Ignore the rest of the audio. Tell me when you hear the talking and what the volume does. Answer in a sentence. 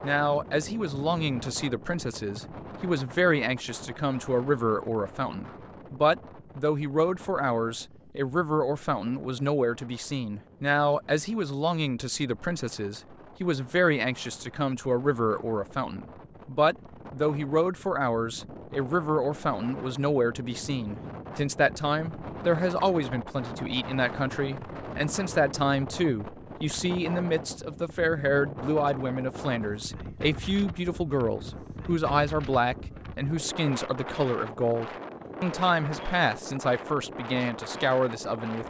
You can hear the talking from 0.0 to 38.6 s, at a steady volume.